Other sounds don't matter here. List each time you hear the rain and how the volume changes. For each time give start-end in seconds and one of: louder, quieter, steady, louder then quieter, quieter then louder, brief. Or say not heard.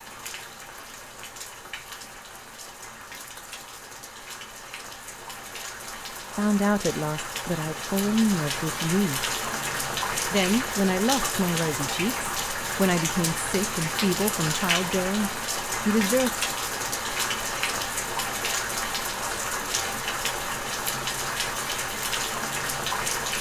0.0-23.3 louder.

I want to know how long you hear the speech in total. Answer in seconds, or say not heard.
9 s.